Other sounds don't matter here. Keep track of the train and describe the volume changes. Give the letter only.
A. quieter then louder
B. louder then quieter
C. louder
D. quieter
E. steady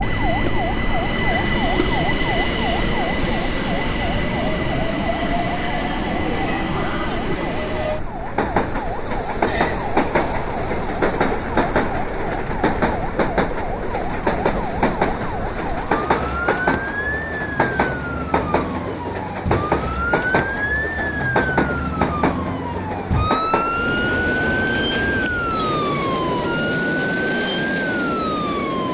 E.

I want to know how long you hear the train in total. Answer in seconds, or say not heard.
29 s.